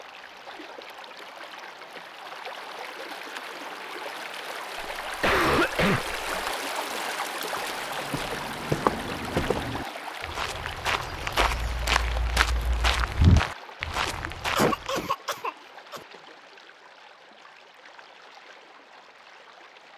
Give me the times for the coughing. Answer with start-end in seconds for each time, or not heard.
4.8-6.5, 14.1-16.0.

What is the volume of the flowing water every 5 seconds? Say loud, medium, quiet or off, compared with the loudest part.
medium, loud, medium, quiet.